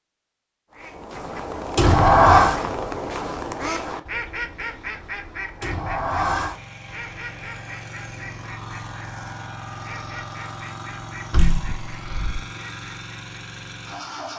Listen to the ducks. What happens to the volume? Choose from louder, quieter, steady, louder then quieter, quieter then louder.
quieter.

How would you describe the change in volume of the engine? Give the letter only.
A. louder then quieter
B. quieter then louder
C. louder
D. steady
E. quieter
D.